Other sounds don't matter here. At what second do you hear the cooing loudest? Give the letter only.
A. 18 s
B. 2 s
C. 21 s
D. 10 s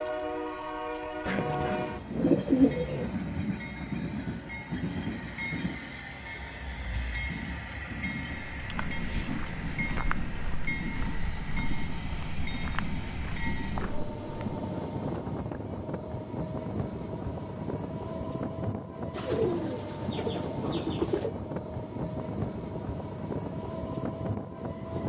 B.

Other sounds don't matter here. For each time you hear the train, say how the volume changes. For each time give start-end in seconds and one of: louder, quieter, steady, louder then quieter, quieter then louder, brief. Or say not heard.
0.0-25.0 steady.